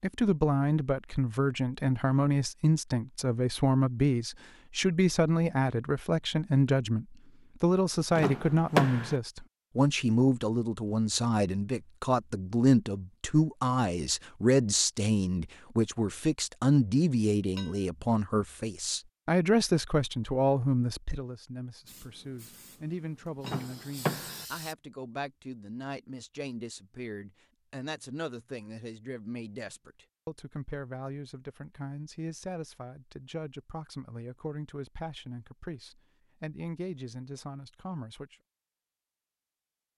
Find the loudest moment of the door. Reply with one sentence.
The loudest moment of the door is at 9 seconds.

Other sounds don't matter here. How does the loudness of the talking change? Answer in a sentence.
The volume of the talking goes down.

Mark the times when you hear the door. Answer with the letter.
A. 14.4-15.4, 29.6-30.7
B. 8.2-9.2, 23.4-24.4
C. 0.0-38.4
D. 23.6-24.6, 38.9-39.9
B.